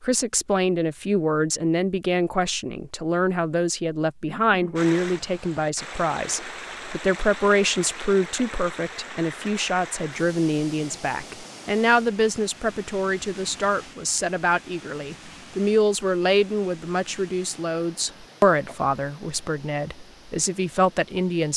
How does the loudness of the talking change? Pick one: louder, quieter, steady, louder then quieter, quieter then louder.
steady.